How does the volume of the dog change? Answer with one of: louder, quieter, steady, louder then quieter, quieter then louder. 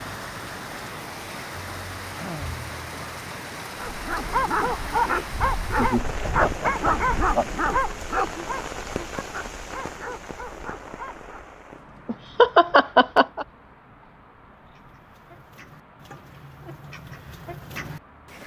quieter.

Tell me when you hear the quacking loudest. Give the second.
18 s.